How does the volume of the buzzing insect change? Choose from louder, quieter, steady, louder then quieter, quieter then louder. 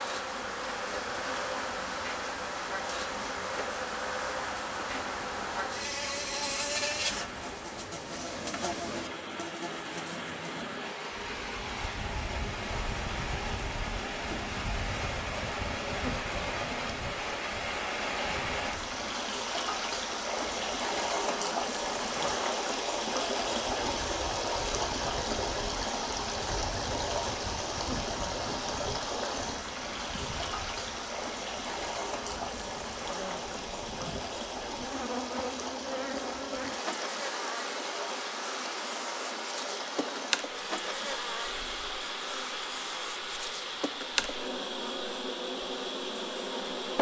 quieter then louder.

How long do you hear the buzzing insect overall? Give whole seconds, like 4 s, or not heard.
47 s.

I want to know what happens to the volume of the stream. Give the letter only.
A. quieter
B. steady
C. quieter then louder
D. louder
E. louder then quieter
E.